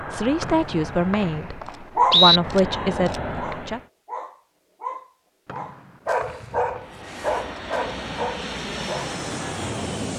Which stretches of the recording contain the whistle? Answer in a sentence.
The whistle can be heard from 0.4 to 2.4 s and from 5.5 to 6.8 s.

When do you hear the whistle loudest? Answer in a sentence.
The loudest moment of the whistle is at 2 seconds.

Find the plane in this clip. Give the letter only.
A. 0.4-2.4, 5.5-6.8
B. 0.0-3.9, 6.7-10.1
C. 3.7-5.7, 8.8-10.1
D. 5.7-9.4
B.